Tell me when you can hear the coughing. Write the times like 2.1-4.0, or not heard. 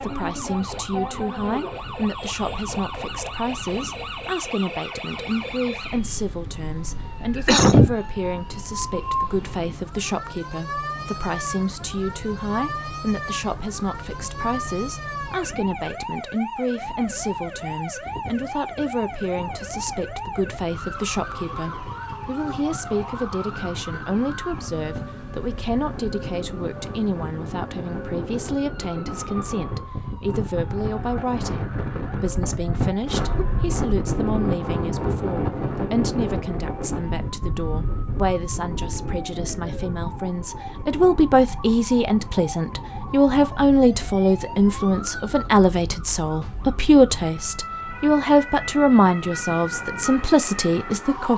7.3-8.0, 33.0-33.9.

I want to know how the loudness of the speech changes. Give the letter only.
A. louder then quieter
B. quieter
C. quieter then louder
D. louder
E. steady
D.